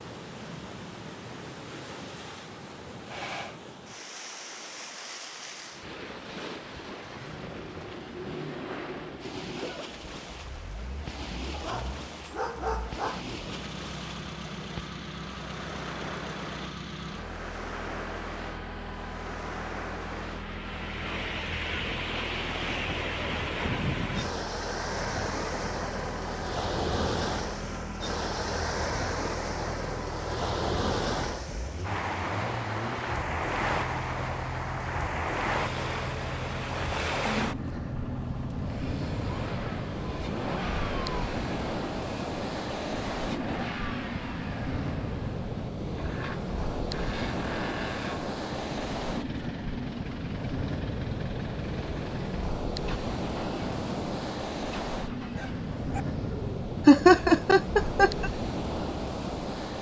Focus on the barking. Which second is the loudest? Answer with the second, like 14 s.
13 s.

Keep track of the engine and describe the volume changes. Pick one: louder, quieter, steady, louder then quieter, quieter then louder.
steady.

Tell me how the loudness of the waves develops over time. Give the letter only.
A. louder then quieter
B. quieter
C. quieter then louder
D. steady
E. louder
E.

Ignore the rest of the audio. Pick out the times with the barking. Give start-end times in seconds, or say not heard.
11.5-13.2, 55.3-56.0.